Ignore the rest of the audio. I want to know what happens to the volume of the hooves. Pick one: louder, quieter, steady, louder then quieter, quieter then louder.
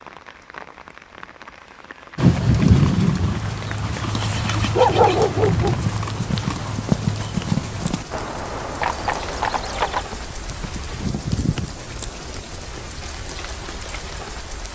quieter.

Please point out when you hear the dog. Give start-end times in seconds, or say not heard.
4.8-5.8.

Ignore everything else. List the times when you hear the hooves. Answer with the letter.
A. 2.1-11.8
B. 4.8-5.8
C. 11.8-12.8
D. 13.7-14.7
A.